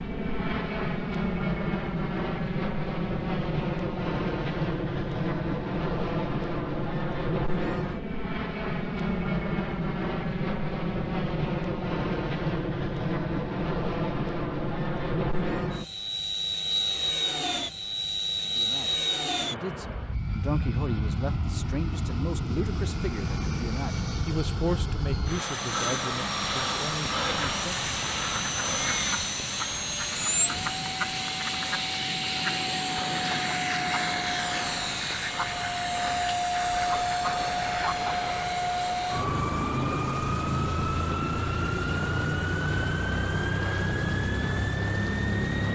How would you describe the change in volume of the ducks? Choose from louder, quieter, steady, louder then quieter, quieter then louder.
steady.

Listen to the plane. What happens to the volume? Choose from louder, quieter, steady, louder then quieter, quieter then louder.
steady.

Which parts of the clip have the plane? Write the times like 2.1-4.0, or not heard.
0.0-45.6.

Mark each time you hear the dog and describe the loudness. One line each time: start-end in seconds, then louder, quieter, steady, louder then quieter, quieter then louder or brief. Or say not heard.
not heard.